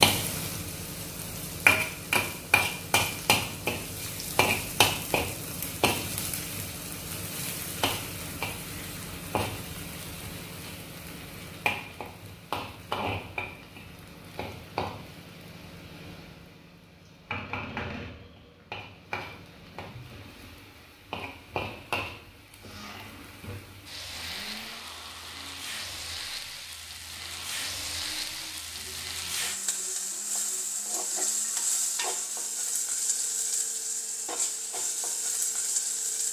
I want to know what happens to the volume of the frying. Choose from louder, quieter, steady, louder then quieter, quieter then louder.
quieter then louder.